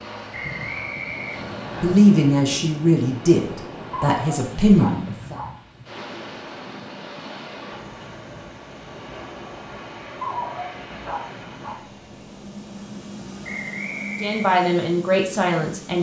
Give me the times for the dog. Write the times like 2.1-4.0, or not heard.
3.9-5.5, 10.2-11.8.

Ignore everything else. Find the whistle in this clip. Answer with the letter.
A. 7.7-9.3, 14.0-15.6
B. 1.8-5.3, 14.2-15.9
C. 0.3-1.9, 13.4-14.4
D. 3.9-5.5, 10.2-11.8
C.